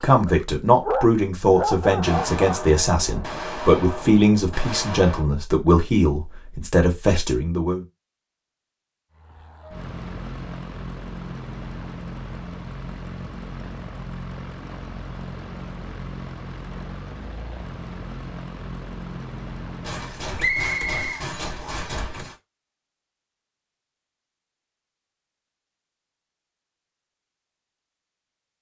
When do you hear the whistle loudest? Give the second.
21 s.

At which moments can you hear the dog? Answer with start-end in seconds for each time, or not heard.
0.0-2.7.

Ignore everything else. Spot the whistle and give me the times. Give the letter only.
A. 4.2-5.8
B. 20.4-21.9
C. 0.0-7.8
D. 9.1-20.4
B.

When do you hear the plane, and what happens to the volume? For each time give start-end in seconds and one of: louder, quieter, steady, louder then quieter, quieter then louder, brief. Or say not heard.
9.1-20.4 steady.